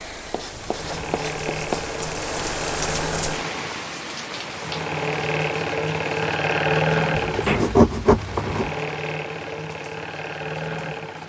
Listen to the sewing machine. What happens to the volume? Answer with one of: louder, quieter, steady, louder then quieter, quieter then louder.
louder then quieter.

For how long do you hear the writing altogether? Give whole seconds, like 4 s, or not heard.
3 s.